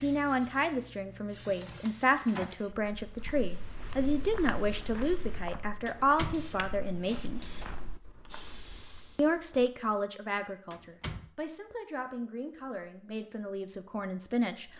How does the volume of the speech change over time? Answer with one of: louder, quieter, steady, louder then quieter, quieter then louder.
quieter.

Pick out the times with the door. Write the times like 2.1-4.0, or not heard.
1.4-2.6, 5.8-6.9, 10.7-11.3.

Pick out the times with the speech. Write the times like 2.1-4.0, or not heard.
0.0-7.4, 9.2-14.7.